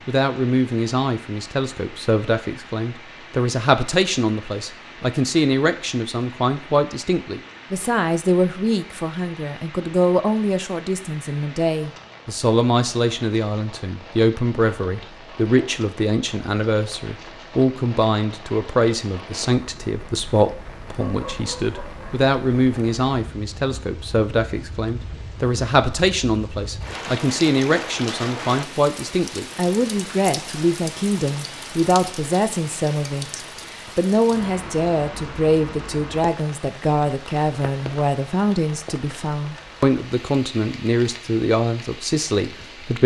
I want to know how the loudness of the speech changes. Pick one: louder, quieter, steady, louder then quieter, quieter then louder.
steady.